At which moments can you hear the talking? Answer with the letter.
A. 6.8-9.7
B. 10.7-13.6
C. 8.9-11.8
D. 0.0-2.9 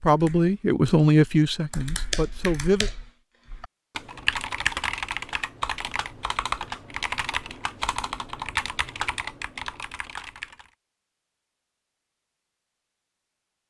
D.